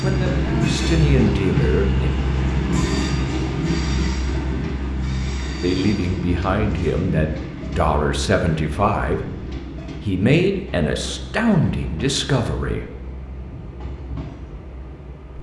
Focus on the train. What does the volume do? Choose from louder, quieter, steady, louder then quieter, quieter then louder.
quieter.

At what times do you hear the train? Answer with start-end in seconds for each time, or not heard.
0.0-15.3.